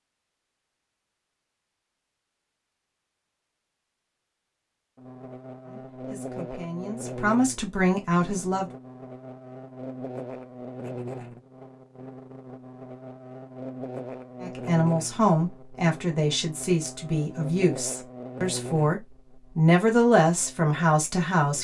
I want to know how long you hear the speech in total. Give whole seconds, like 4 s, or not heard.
10 s.